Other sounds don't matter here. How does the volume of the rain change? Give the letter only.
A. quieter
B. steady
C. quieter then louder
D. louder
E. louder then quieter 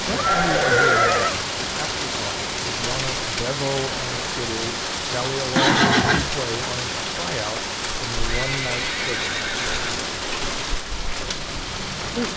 B.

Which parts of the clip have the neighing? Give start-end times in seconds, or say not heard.
0.1-1.4, 5.5-6.3, 8.2-10.1.